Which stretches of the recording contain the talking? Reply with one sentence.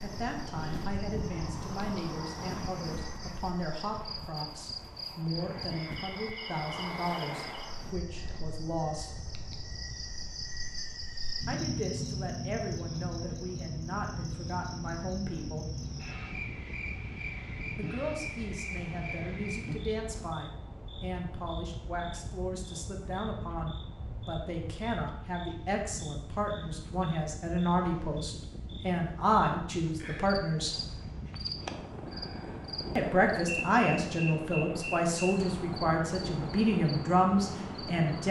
You can hear the talking from 0.0 to 9.2 s, from 11.4 to 15.7 s, from 17.8 to 30.8 s and from 33.0 to 38.2 s.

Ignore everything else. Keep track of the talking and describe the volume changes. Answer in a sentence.
The volume of the talking goes up.